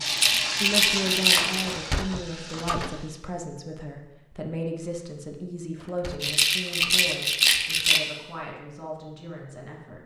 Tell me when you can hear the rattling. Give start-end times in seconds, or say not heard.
0.1-1.8, 6.2-8.0.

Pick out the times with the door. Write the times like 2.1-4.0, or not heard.
1.6-3.1, 5.8-7.0.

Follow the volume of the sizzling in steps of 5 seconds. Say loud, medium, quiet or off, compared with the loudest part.
loud, off.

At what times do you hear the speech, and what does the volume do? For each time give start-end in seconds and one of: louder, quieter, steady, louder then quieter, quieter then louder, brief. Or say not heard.
0.0-10.0 quieter.